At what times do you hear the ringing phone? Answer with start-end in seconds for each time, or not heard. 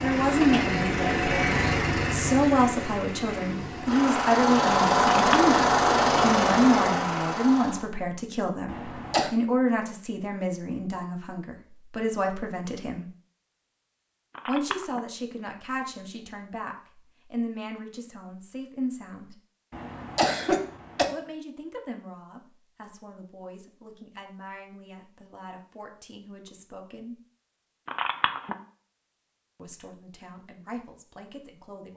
5.1-5.5, 14.3-15.0, 27.9-28.6.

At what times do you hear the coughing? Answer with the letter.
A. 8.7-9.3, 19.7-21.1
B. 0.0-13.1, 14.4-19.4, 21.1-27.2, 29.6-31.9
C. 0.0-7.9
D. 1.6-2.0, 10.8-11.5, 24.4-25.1
A.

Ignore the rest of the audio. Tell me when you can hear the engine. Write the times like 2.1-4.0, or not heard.
0.0-7.9.